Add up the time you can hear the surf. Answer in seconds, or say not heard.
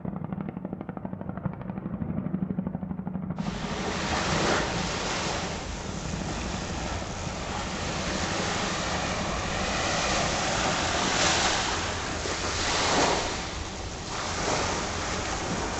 12 s.